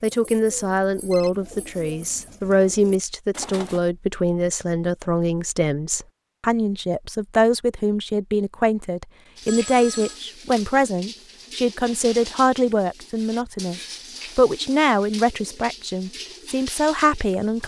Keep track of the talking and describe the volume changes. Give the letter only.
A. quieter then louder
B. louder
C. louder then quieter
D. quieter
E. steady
E.